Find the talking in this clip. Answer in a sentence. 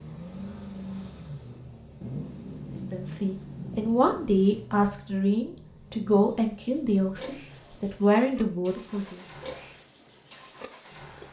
The talking can be heard from 2.9 to 9.2 s.